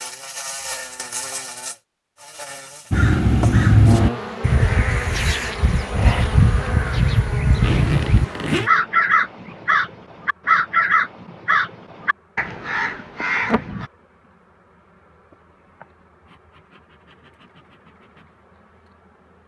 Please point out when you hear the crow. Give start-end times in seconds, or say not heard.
2.9-13.9.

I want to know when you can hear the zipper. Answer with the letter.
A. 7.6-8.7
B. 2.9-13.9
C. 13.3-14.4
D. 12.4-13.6
A.